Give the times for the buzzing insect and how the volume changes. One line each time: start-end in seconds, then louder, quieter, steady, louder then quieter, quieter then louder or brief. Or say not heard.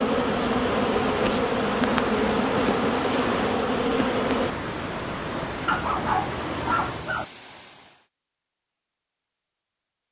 0.0-4.5 steady.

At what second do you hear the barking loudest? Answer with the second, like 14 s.
6 s.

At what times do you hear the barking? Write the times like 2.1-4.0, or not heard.
5.7-7.2.